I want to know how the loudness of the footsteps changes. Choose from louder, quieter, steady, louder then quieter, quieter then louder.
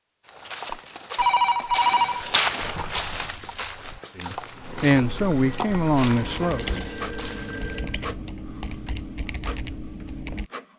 louder then quieter.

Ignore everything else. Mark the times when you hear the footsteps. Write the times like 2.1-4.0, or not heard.
0.2-7.7.